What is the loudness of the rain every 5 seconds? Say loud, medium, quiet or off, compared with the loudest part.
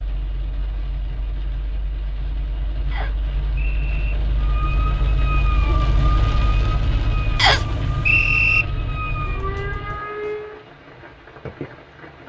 medium, loud, medium.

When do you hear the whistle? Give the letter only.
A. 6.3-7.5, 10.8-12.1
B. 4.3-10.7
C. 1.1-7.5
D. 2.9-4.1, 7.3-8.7
D.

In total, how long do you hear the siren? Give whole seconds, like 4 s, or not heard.
6 s.